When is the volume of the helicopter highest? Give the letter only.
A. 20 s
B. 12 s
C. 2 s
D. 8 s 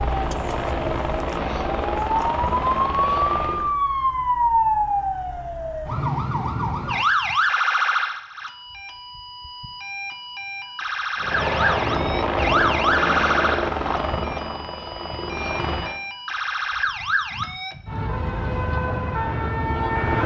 B.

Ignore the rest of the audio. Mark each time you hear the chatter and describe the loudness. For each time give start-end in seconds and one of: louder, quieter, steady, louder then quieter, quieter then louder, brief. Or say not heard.
not heard.